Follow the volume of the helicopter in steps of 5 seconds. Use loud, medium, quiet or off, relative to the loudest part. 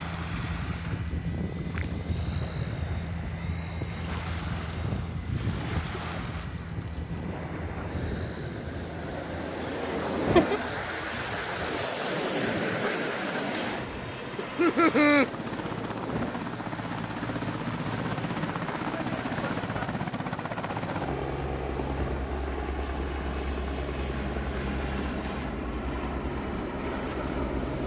loud, medium, medium, loud, loud, loud.